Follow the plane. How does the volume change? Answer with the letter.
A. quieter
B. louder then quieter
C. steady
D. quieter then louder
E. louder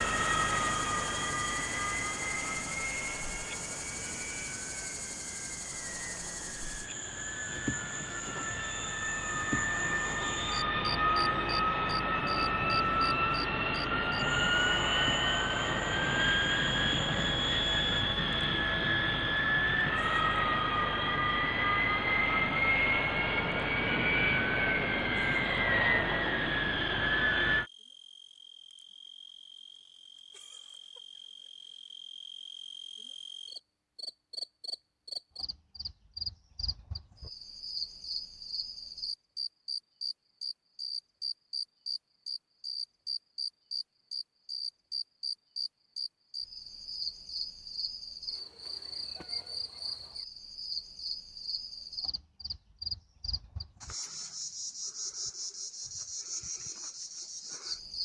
E.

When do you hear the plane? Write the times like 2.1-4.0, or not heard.
0.0-27.7.